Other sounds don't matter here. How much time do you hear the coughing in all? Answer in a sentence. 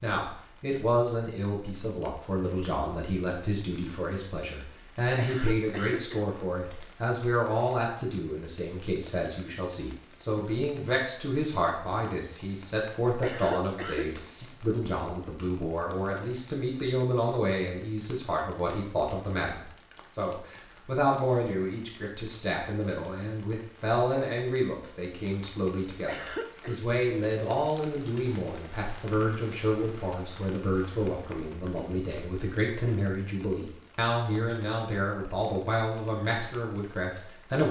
You can hear the coughing for 3 seconds altogether.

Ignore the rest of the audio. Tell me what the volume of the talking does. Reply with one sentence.
The volume of the talking stays about the same.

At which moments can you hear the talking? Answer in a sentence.
You can hear the talking from 0.0 to 37.6 s.